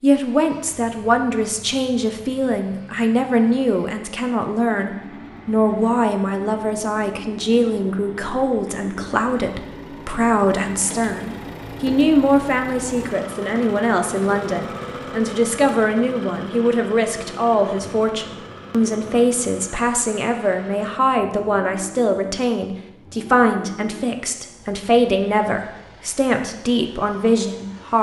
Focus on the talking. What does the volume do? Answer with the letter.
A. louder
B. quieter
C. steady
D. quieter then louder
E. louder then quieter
C.